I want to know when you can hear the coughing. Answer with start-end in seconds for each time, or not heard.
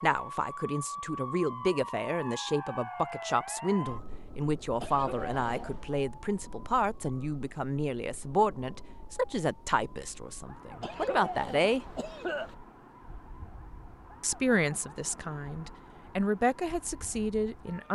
4.8-5.9, 10.8-12.6.